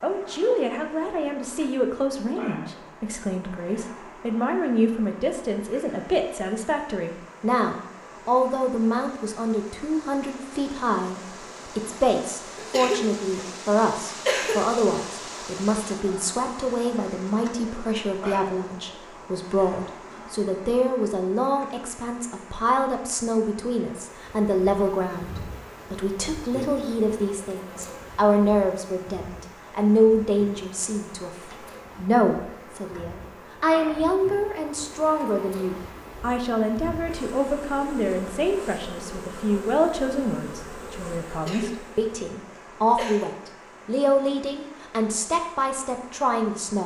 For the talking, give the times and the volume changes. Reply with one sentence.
You can hear the talking from 0.0 to 46.8 s, at a steady volume.